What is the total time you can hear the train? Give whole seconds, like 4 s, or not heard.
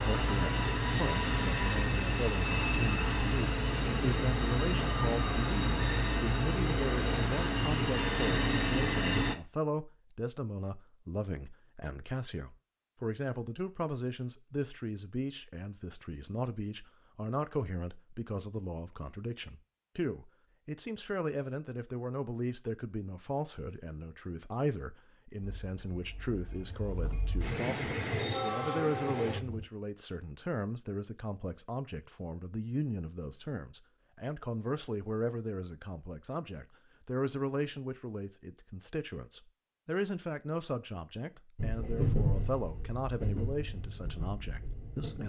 17 s.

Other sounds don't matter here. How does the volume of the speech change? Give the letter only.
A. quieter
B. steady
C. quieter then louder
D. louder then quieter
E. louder
B.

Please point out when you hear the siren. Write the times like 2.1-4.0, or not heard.
not heard.